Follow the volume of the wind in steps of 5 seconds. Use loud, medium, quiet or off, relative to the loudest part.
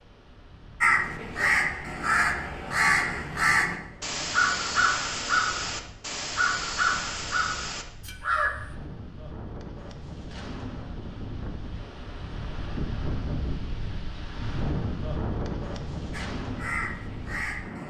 quiet, medium, loud, loud.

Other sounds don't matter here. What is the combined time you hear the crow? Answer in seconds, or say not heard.
10 s.